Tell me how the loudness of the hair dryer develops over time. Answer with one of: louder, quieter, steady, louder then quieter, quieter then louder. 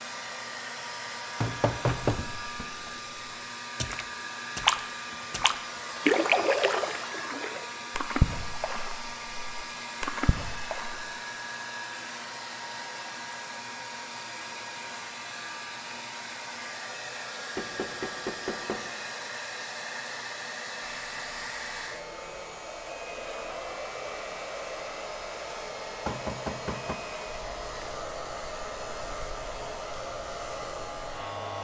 steady.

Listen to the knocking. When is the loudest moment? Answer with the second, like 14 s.
2 s.